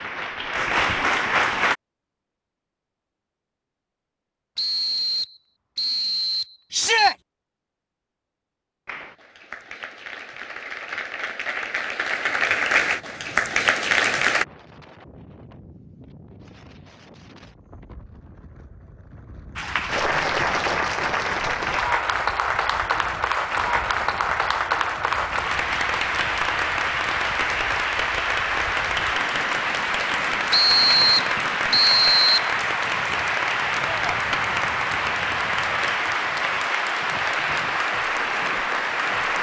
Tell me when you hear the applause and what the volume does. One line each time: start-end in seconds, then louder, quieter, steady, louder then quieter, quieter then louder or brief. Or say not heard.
0.0-1.8 brief
8.8-14.4 louder
19.6-39.3 steady.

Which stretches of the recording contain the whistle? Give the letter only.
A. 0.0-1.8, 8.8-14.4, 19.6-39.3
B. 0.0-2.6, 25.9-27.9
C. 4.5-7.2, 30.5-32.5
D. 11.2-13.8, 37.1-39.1
C.